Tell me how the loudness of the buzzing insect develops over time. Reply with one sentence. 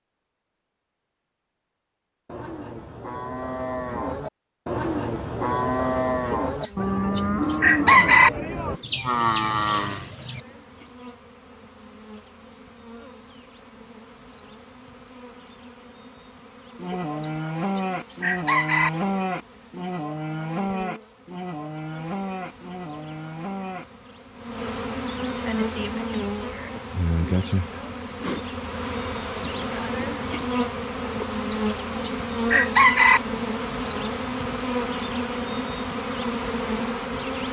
The loudness of the buzzing insect goes up.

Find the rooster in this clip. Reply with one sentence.
You can hear the rooster from 6.3 to 8.3 s, from 16.9 to 18.9 s and from 31.2 to 33.2 s.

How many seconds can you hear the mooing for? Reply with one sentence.
You can hear the mooing for 15 seconds altogether.